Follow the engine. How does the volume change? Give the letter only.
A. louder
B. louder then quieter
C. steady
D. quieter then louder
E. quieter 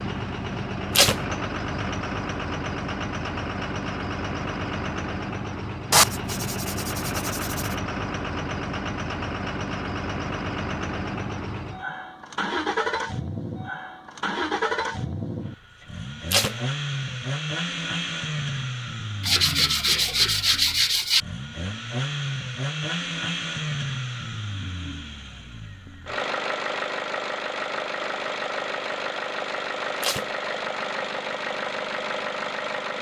C.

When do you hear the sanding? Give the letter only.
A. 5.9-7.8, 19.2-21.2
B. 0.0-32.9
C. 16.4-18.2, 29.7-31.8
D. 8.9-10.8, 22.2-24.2
A.